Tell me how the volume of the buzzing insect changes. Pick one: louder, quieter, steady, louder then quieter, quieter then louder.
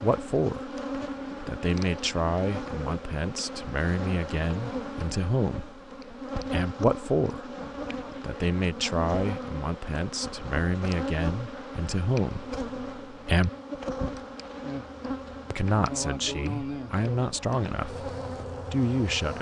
steady.